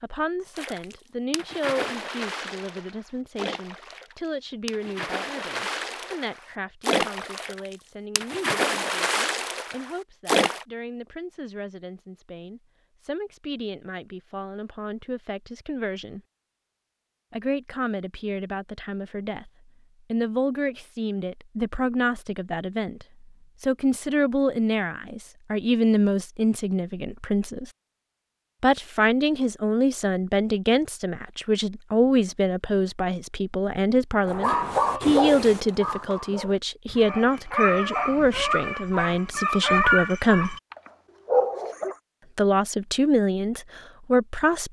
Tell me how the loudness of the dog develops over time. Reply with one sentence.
The loudness of the dog goes down, then up.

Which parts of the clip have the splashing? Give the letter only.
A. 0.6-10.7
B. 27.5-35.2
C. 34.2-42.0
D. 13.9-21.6
A.